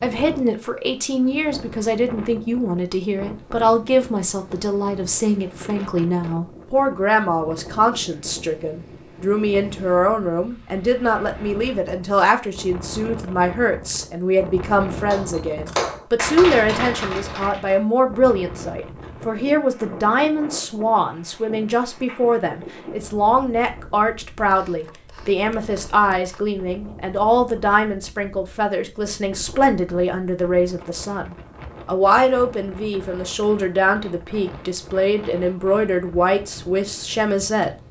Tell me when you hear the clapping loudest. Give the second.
16 s.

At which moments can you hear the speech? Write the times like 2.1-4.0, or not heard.
0.0-37.7.